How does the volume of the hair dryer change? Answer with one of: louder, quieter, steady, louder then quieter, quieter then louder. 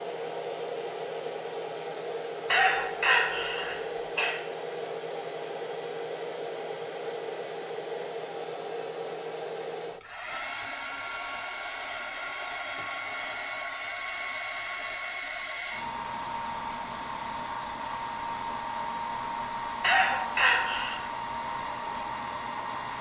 steady.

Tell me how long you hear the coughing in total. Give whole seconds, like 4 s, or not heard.
3 s.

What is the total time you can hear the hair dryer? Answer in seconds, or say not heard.
23 s.